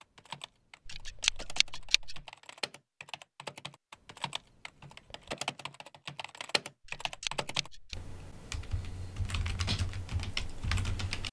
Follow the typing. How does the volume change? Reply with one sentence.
The loudness of the typing goes up.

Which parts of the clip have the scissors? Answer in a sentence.
You can hear the scissors from 0.8 to 2.2 s and from 6.8 to 8.0 s.